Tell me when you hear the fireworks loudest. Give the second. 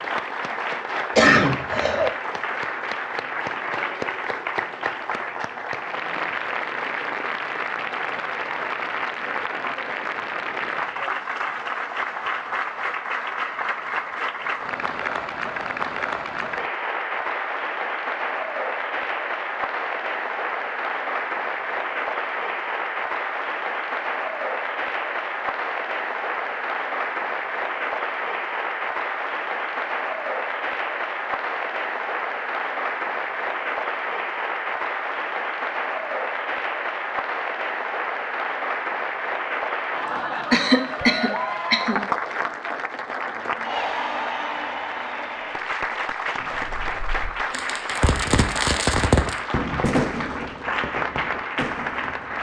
49 s.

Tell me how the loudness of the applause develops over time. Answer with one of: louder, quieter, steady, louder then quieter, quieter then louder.
steady.